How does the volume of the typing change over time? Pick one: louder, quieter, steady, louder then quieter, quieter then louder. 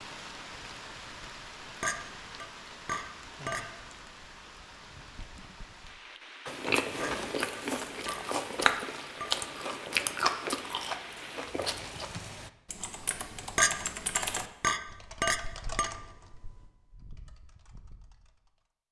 louder then quieter.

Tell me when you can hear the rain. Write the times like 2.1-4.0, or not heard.
0.0-12.5.